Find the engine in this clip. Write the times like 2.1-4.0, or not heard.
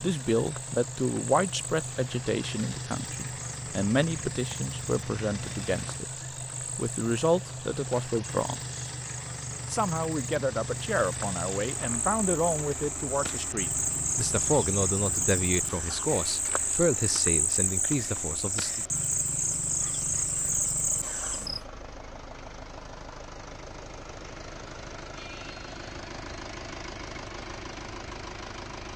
0.0-28.9.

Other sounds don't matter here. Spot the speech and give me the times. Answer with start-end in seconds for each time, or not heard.
0.0-6.0, 6.8-8.6, 9.7-18.9.